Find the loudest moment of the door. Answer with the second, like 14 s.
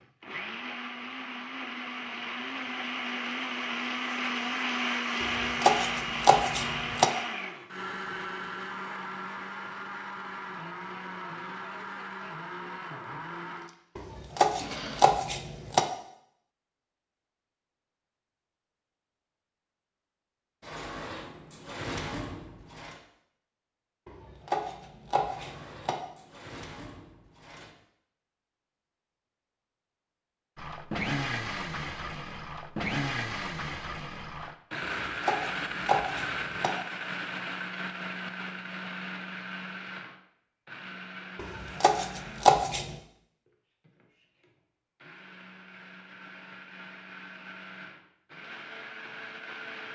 22 s.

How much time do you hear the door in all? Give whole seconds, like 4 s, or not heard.
5 s.